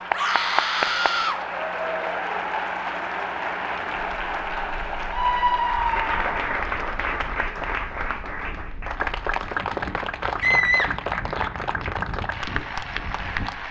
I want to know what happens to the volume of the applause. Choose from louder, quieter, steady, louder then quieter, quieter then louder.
steady.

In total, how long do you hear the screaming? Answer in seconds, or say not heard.
4 s.